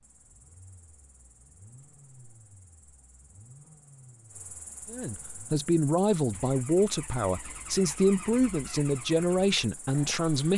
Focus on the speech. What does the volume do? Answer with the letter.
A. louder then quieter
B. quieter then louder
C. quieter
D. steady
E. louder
D.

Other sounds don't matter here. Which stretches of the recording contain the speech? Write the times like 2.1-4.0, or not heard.
4.9-10.5.